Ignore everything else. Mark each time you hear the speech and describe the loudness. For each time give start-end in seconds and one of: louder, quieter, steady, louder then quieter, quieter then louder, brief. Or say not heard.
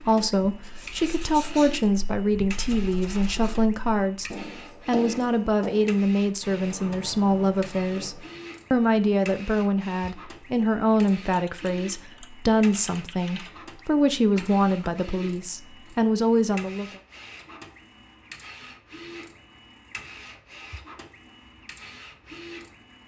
0.0-16.9 steady.